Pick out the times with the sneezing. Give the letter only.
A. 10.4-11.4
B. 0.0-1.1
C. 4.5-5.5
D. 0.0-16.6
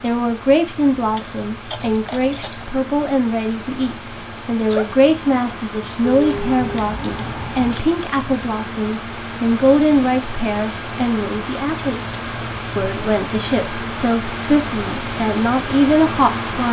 C.